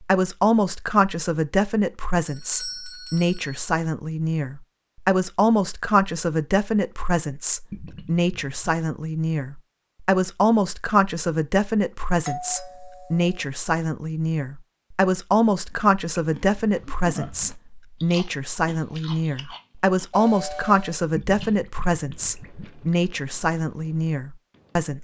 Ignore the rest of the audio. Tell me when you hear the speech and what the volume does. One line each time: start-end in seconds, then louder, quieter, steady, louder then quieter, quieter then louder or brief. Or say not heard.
0.0-24.9 steady.